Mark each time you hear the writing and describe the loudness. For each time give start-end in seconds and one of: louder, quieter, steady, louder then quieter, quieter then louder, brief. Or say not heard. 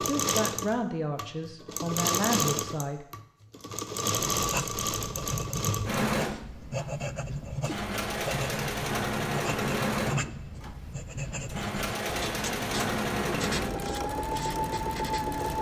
4.3-15.5 steady.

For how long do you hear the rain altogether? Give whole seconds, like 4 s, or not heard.
not heard.